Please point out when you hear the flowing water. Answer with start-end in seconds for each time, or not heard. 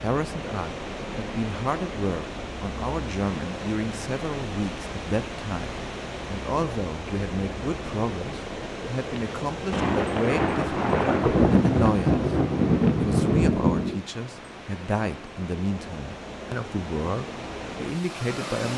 0.0-18.7.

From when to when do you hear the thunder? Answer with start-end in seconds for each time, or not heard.
9.7-14.0.